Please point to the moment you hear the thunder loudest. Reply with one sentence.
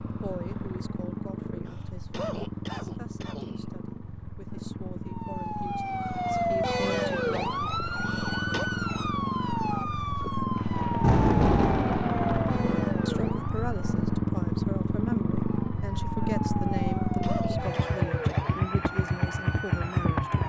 The volume of the thunder peaks at 11 seconds.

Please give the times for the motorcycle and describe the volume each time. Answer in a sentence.
The motorcycle can be heard from 0.0 to 20.4 s, getting louder.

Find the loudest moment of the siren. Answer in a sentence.
The volume of the siren peaks at 7 seconds.